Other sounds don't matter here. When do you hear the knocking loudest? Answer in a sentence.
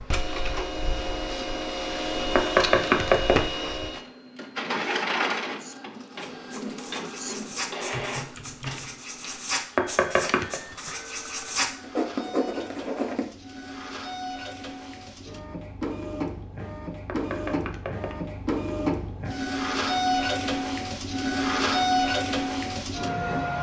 The loudest moment of the knocking is at 3 seconds.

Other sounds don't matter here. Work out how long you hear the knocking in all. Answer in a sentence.
You can hear the knocking for 3 seconds altogether.